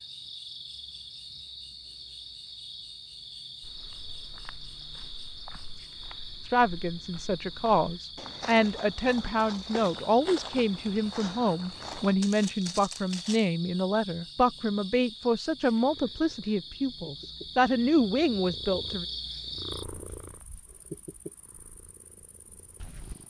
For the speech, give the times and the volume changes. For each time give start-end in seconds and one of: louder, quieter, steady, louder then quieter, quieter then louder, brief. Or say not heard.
6.5-19.1 steady.